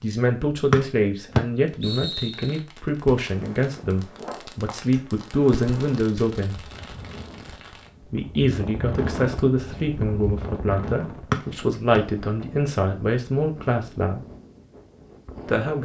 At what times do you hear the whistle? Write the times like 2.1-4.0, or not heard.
0.7-2.6, 11.3-12.0.